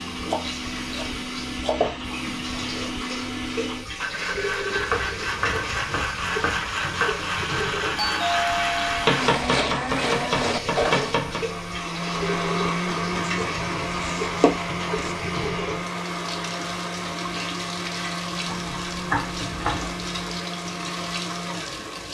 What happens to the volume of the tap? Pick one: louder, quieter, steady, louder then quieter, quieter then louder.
steady.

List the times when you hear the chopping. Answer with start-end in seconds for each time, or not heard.
0.2-1.9, 4.8-7.1, 9.1-11.4, 13.2-15.2, 18.4-20.0.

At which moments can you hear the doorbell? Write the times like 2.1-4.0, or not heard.
8.0-9.1.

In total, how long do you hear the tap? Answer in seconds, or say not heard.
22 s.